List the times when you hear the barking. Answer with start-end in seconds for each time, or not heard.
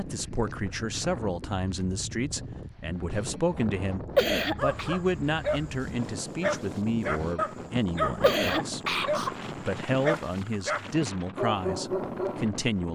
4.5-12.4.